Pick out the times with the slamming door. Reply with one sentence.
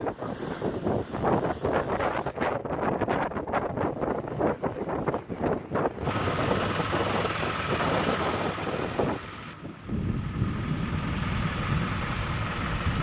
You can't hear the slamming door here.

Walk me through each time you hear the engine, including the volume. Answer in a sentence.
You can hear the engine briefly from 0.0 to 2.4 s; and from 6.0 to 12.9 s, getting quieter then louder.